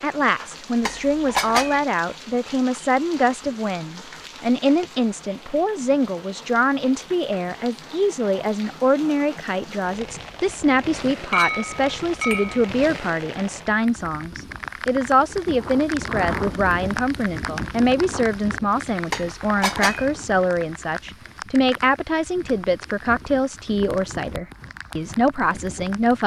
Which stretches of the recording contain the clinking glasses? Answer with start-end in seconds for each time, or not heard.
0.8-1.8, 11.3-12.7, 19.1-20.1.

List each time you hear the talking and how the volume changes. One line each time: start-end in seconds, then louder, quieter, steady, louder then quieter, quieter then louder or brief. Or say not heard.
0.0-26.2 steady.